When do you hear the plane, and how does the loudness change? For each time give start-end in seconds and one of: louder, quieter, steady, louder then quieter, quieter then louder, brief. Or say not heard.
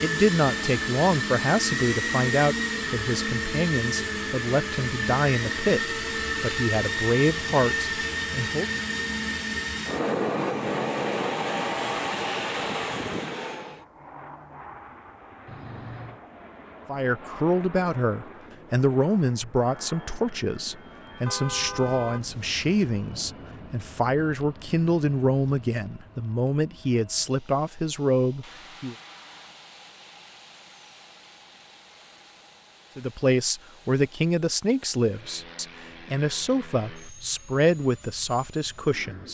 0.0-39.2 quieter.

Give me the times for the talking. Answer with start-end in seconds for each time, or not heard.
0.0-8.7, 16.9-28.9, 33.0-39.2.